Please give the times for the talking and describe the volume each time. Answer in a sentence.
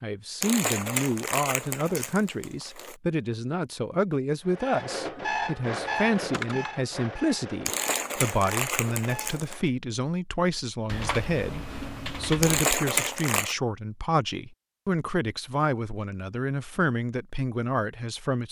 You can hear the talking from 0.0 to 18.4 s, at a steady volume.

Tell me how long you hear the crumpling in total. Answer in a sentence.
You can hear the crumpling for 6 seconds altogether.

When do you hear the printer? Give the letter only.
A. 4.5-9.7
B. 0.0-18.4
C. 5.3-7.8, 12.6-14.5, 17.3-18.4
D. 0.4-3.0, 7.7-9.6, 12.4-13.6
A.